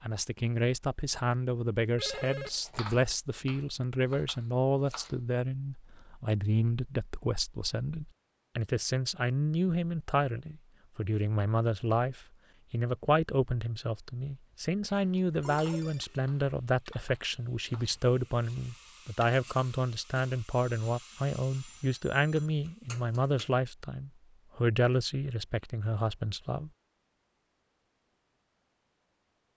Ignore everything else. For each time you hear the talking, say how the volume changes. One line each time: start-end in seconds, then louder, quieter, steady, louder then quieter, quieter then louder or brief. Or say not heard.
0.0-26.7 steady.